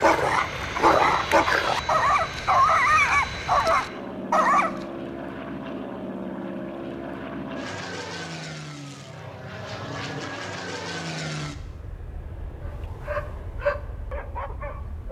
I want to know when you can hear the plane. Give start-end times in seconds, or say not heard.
0.0-15.0.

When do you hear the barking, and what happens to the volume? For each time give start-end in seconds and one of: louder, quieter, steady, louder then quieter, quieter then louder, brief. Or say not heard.
0.0-4.7 steady
13.1-15.0 brief.